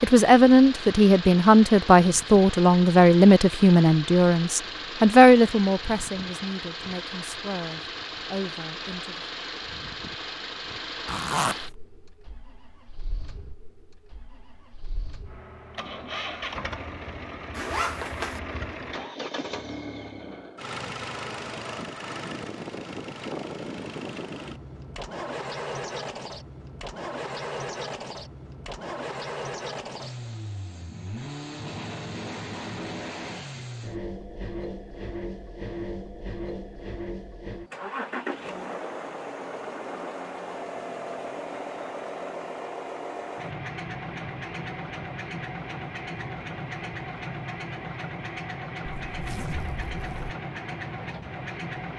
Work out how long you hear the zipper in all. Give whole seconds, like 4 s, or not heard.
3 s.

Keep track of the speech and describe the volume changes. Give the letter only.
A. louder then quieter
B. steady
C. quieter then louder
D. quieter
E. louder
D.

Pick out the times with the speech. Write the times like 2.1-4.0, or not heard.
0.0-9.2.